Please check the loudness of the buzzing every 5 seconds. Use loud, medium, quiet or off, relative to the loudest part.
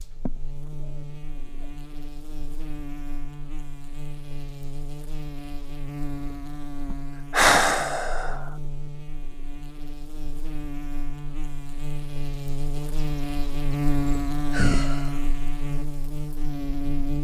medium, medium, loud, loud.